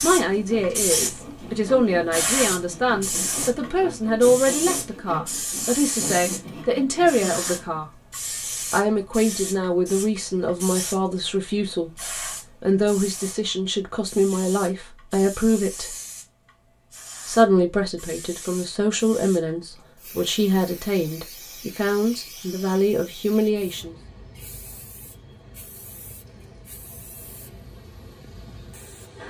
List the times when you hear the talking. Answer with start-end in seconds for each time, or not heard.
0.0-7.9, 8.7-15.9, 17.2-23.9.